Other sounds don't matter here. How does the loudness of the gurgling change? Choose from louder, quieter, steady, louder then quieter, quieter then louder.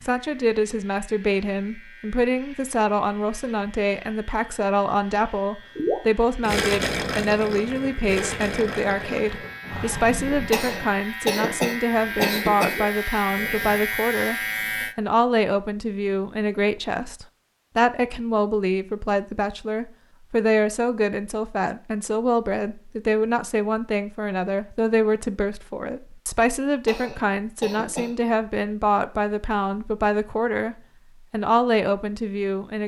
quieter.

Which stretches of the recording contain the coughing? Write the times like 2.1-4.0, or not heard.
10.5-12.8, 26.9-28.1.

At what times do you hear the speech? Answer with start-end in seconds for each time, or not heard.
0.0-32.8.